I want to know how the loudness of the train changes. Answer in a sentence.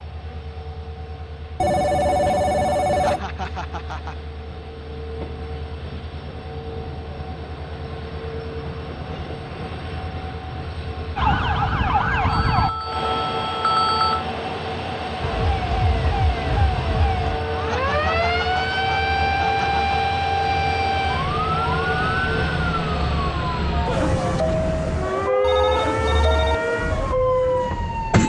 The volume of the train goes up.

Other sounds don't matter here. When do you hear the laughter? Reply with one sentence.
The laughter can be heard from 2.9 to 4.2 s and from 17.6 to 20.0 s.